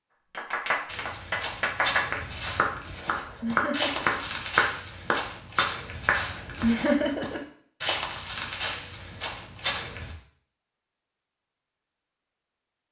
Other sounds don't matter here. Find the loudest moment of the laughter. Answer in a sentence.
The volume of the laughter peaks at 7 seconds.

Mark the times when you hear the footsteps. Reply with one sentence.
You can hear the footsteps from 0.8 to 10.2 s.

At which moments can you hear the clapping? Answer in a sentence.
You can hear the clapping from 0.3 to 6.7 s.